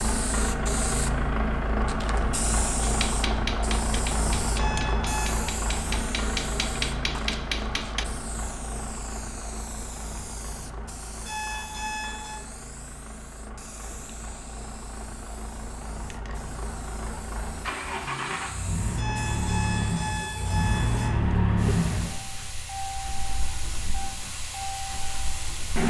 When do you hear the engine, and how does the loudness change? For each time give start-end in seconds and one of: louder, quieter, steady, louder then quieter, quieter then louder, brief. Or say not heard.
0.0-25.8 quieter then louder.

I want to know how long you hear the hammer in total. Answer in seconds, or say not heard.
5 s.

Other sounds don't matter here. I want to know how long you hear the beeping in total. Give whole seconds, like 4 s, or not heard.
4 s.